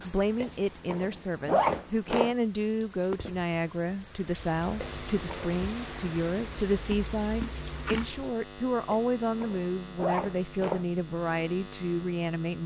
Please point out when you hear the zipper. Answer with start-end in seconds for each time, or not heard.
0.4-2.4, 4.8-5.5, 8.9-10.8.